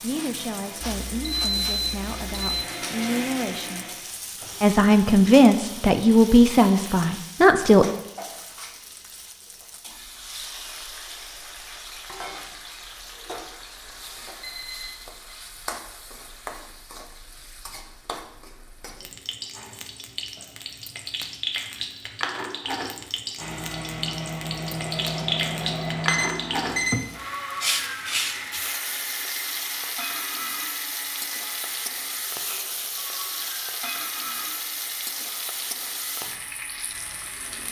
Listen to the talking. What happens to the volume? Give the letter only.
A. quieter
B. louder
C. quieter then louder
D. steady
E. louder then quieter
B.